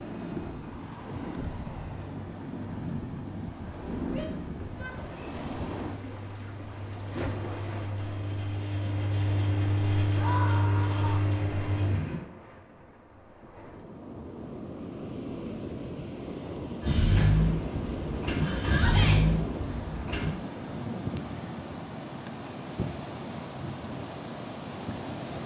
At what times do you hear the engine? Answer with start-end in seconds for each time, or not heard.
6.0-12.2, 16.8-20.3.